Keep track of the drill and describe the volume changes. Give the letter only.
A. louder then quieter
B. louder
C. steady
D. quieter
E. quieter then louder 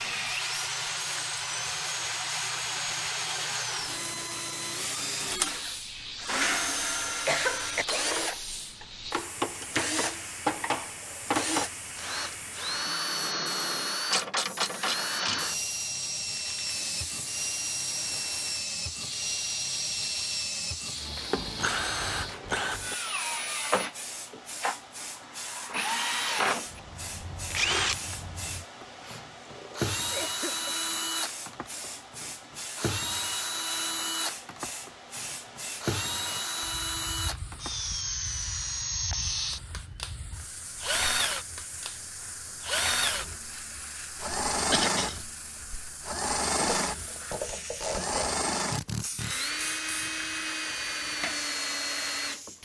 C.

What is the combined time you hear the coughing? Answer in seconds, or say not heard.
3 s.